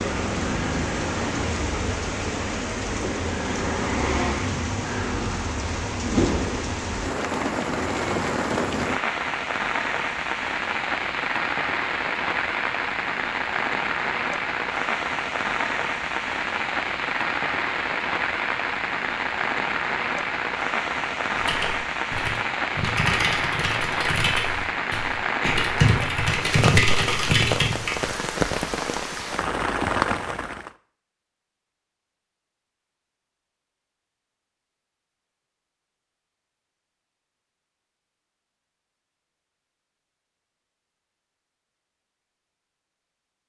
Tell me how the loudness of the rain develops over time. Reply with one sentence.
The volume of the rain stays about the same.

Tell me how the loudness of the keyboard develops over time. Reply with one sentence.
The volume of the keyboard goes up.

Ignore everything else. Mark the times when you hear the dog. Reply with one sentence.
The dog can't be heard in this clip.